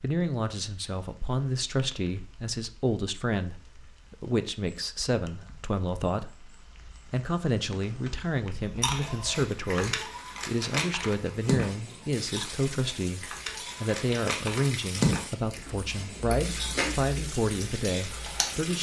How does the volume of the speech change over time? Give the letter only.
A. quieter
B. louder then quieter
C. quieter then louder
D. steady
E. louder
D.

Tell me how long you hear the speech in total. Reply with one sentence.
You can hear the speech for 19 seconds altogether.